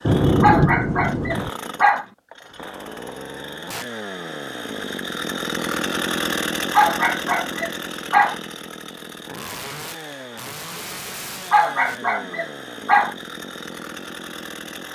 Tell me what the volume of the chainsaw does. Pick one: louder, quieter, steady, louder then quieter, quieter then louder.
louder then quieter.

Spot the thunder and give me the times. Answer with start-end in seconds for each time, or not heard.
0.1-1.5.